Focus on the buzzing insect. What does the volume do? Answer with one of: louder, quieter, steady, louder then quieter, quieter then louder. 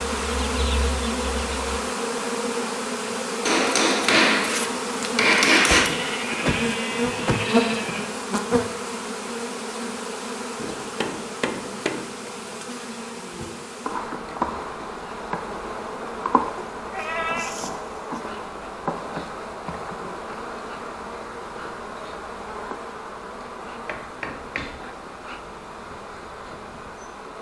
quieter.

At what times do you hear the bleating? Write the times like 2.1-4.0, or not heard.
5.5-8.1, 16.8-18.2.